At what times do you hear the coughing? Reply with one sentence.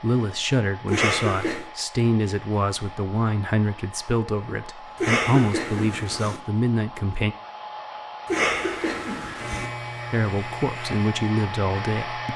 The coughing can be heard from 0.9 to 1.6 s, from 5.0 to 6.4 s and from 8.2 to 9.7 s.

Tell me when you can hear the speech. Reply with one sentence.
You can hear the speech from 0.0 to 7.3 s and from 10.1 to 12.3 s.